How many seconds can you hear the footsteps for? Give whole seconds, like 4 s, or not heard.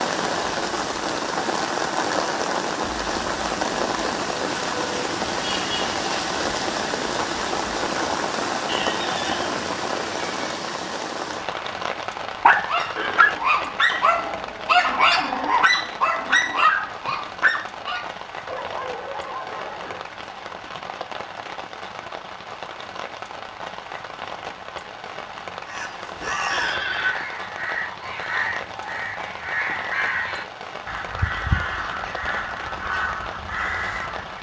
not heard.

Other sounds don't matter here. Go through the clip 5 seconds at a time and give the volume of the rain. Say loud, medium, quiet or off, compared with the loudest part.
loud, loud, medium, medium, medium, medium, medium.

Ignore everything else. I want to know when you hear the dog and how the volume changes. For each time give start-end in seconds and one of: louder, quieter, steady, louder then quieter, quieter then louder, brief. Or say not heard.
12.4-20.1 quieter.